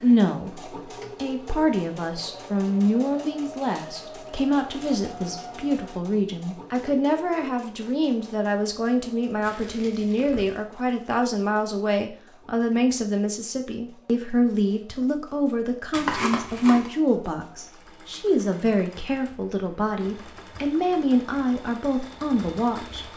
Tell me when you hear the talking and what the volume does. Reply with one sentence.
The talking can be heard from 0.0 to 23.1 s, at a steady volume.